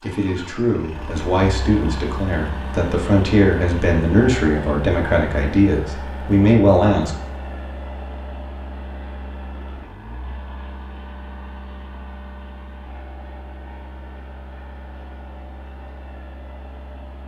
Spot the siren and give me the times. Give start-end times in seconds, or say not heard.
not heard.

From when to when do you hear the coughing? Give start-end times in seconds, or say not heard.
not heard.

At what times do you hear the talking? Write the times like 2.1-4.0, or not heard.
0.0-7.2.